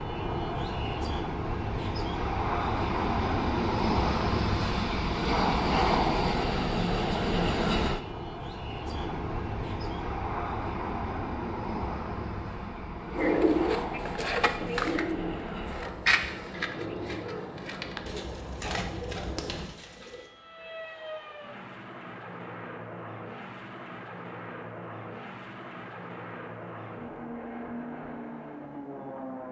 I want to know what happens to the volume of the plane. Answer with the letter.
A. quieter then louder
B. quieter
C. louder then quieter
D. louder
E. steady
B.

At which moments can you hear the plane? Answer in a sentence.
The plane can be heard from 0.0 to 29.4 s.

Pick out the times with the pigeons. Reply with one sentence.
The pigeons can be heard from 13.2 to 20.3 s.